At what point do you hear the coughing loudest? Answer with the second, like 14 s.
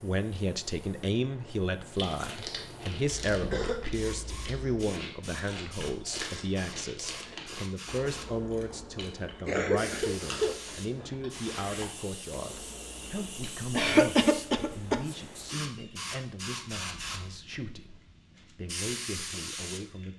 14 s.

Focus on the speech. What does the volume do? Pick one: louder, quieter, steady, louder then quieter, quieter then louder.
quieter.